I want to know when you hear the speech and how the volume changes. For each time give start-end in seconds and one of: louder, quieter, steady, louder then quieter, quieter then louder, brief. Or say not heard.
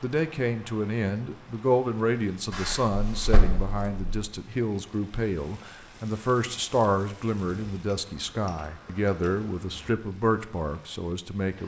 0.0-11.6 steady.